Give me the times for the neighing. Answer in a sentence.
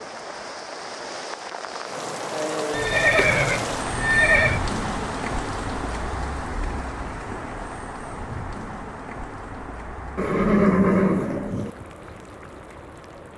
The neighing can be heard from 2.7 to 4.6 s and from 10.2 to 11.7 s.